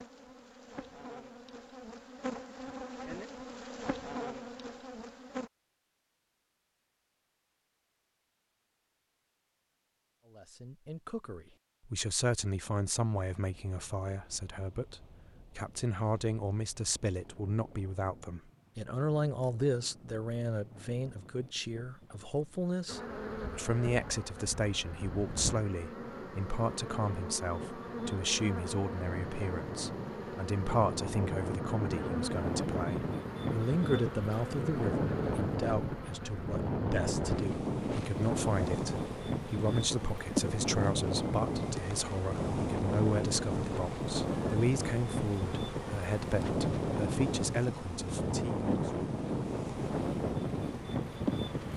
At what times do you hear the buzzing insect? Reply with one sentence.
You can hear the buzzing insect from 0.0 to 5.5 s and from 22.9 to 51.7 s.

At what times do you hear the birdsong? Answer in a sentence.
You can't hear the birdsong here.